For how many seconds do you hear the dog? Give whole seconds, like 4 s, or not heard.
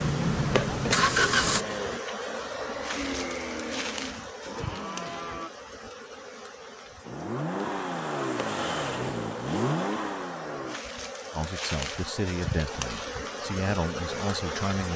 not heard.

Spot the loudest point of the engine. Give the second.
1 s.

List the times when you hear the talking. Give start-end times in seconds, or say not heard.
11.3-14.9.